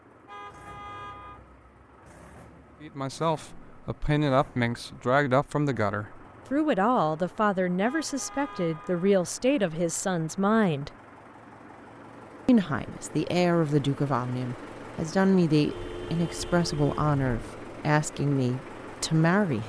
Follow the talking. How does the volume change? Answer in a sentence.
The volume of the talking stays about the same.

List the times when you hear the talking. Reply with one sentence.
The talking can be heard from 2.8 to 10.9 s and from 12.4 to 19.6 s.